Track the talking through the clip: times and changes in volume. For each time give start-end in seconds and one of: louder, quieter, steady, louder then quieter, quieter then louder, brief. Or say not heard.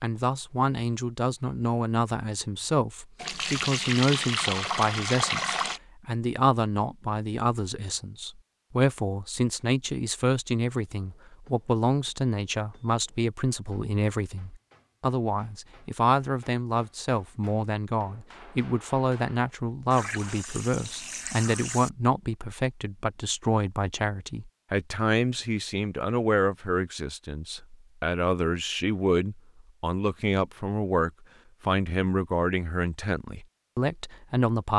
0.0-34.7 steady.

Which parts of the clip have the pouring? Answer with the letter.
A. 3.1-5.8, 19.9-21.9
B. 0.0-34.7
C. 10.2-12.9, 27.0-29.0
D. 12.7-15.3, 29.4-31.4
A.